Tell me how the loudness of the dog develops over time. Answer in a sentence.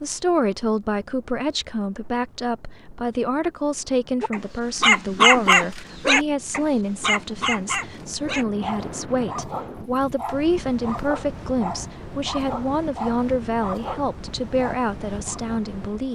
The volume of the dog goes down.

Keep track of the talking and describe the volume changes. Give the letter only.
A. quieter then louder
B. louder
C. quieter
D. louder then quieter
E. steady
E.